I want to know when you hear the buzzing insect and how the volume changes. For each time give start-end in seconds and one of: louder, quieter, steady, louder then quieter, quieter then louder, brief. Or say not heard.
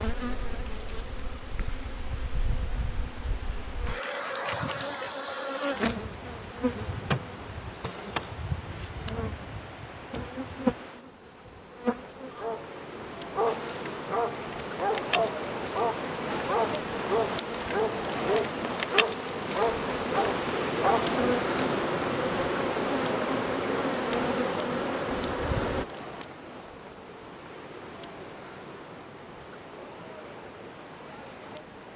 0.0-25.9 louder.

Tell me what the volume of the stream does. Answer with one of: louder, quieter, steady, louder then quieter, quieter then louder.
louder then quieter.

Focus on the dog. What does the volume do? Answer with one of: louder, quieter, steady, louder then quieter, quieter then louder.
steady.